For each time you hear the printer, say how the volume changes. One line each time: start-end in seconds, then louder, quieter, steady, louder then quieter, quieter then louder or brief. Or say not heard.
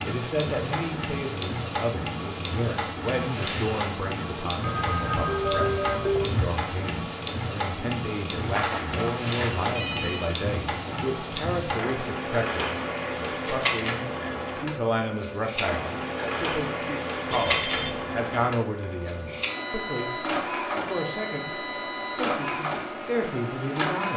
0.0-24.1 steady.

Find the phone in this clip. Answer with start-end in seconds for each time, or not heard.
4.6-6.5, 8.4-10.3, 17.3-18.1.